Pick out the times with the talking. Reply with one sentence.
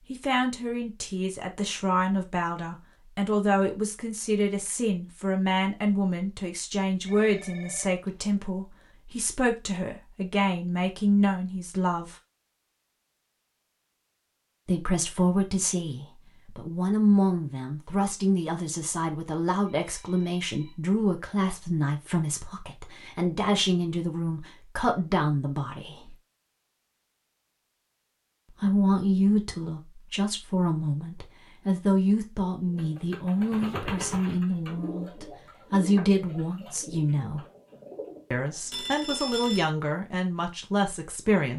You can hear the talking from 0.1 to 12.2 s, from 14.7 to 26.1 s, from 28.6 to 37.5 s and from 38.3 to 41.5 s.